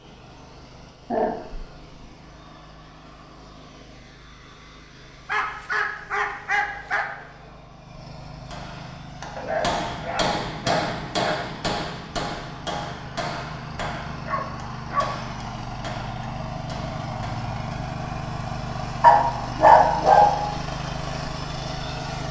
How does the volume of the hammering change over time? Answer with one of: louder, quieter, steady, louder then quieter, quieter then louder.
quieter.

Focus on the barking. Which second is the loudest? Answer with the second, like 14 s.
20 s.